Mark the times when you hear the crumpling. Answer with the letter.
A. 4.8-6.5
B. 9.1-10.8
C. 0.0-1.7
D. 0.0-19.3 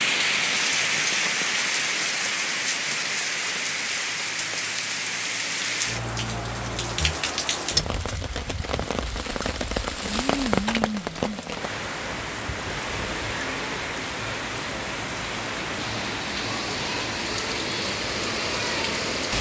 B.